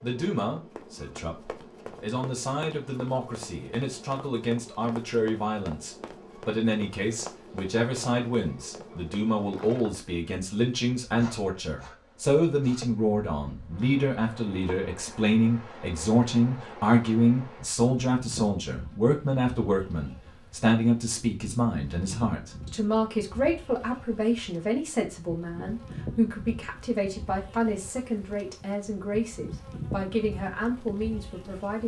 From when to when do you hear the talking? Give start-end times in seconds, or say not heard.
0.0-31.8.